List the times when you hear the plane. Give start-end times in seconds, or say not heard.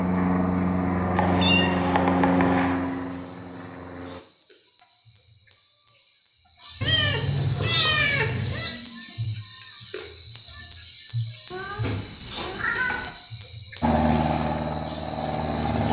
0.0-4.2, 13.8-15.8.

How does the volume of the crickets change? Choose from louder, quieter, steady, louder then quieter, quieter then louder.
louder.